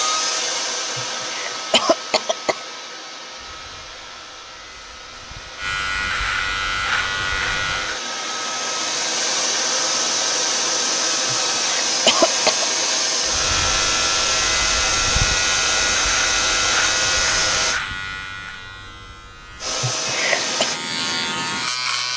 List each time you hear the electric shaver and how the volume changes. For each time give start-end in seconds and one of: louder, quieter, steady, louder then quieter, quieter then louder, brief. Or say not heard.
3.3-8.0 louder
13.2-22.1 quieter then louder.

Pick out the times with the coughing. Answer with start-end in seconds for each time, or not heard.
0.9-2.5, 11.3-12.7, 19.8-20.6.